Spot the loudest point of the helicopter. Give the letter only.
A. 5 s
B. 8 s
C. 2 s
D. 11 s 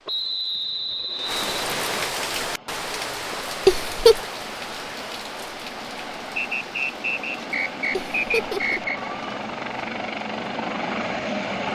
D.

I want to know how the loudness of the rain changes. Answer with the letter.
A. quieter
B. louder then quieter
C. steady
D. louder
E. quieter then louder
A.